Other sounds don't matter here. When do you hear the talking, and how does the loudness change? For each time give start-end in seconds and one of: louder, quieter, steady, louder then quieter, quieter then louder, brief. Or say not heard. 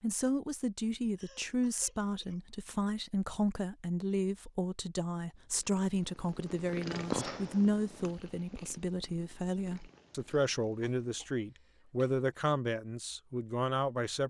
0.0-14.2 steady.